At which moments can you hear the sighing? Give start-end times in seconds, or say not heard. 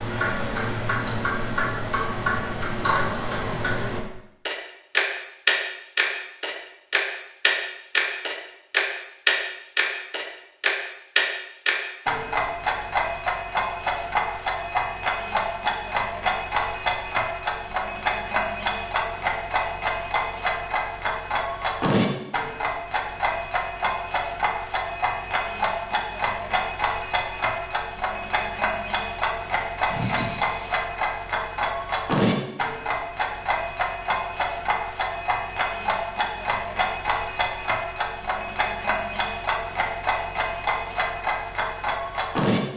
29.9-30.9.